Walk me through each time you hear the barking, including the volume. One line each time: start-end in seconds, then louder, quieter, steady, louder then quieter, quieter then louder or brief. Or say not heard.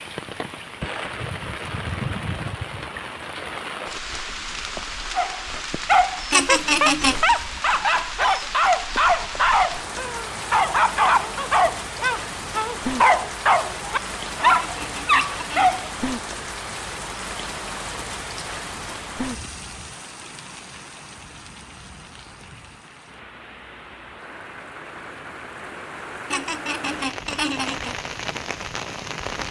5.2-15.9 steady.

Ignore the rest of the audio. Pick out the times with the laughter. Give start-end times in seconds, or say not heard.
6.3-7.3, 14.4-15.8, 26.3-27.9.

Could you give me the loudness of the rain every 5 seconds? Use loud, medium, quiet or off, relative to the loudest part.
loud, loud, loud, loud, medium, loud.